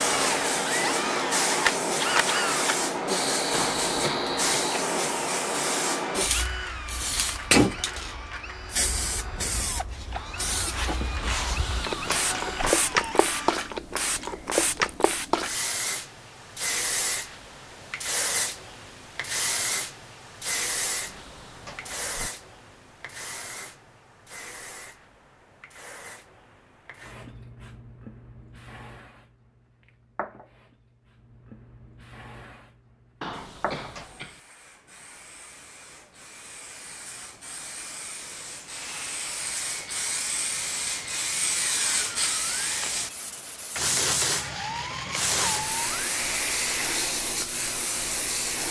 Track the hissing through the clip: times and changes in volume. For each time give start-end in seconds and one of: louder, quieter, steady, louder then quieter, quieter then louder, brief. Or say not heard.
0.0-48.6 quieter then louder.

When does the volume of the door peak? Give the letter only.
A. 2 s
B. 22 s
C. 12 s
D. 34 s
C.